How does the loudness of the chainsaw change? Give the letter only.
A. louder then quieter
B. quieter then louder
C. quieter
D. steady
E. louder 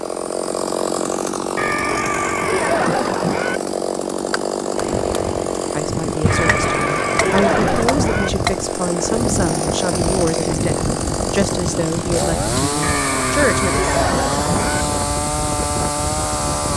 D.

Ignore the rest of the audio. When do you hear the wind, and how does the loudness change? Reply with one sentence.
You can hear the wind from 4.8 to 16.7 s, at a steady volume.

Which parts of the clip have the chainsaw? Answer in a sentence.
The chainsaw can be heard from 0.0 to 16.7 s.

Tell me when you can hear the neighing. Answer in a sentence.
You can hear the neighing from 1.6 to 3.6 s, from 6.2 to 8.3 s and from 12.8 to 14.8 s.